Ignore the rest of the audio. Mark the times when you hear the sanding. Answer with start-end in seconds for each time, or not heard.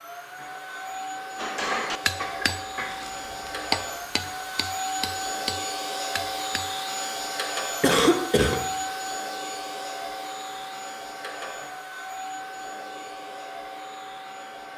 not heard.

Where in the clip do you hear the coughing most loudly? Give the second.
8 s.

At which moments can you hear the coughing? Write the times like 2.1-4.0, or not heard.
1.6-3.0, 7.8-8.6.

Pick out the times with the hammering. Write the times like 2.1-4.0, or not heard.
1.4-6.8.